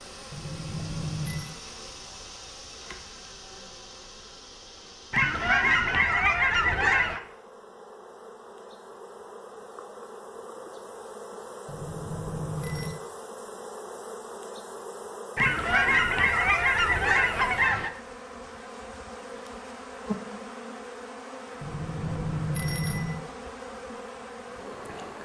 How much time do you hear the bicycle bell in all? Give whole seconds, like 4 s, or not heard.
4 s.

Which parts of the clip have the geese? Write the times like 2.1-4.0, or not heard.
5.1-7.2, 15.3-17.9.